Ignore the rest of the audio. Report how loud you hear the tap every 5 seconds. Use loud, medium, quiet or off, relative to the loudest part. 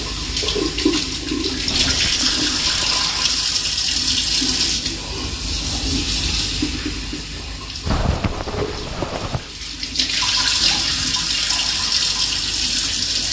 loud, medium, loud.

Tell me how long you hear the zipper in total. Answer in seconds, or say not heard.
3 s.